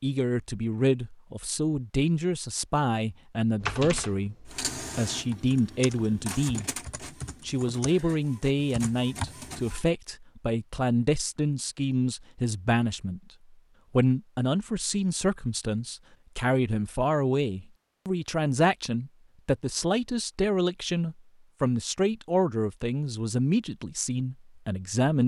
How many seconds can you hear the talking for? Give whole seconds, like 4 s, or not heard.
24 s.